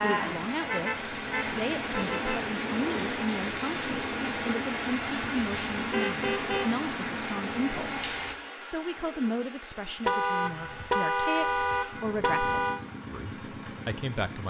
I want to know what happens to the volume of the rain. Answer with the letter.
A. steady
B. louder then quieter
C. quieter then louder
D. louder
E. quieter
A.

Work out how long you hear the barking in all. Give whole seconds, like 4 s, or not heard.
not heard.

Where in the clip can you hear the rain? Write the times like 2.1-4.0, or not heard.
0.0-8.3.